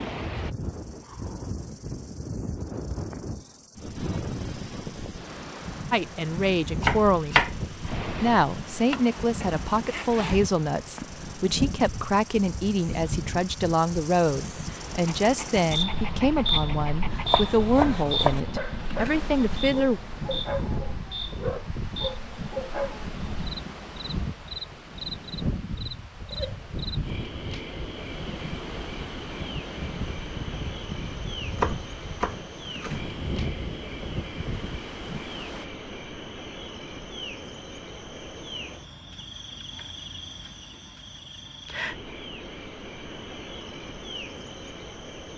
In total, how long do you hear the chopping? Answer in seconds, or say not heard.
5 s.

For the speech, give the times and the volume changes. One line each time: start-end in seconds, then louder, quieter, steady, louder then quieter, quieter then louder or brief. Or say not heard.
5.9-7.4 brief
8.2-20.0 steady.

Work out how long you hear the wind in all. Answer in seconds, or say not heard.
36 s.